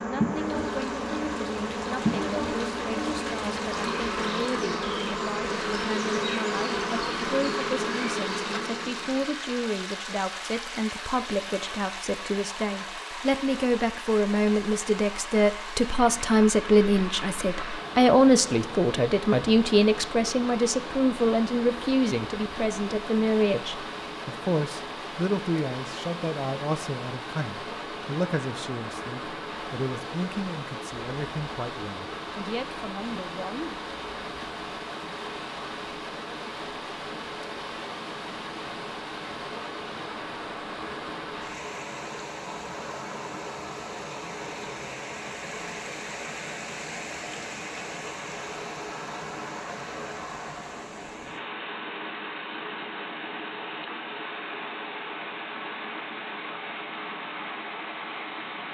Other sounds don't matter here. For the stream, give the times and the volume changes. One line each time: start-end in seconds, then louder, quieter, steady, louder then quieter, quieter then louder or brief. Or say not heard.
0.2-58.6 steady.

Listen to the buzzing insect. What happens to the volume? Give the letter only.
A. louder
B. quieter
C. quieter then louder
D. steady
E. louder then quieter
D.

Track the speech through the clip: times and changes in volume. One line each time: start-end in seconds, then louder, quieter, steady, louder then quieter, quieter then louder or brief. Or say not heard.
0.1-33.8 louder then quieter.